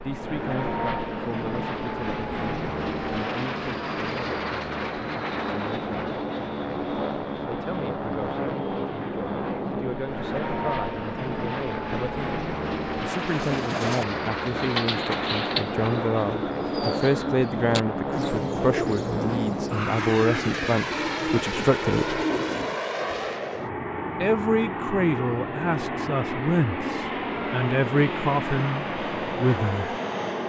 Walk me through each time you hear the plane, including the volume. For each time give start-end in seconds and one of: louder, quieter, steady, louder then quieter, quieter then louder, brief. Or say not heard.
0.0-30.4 steady.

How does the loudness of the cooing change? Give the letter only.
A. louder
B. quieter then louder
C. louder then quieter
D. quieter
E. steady
E.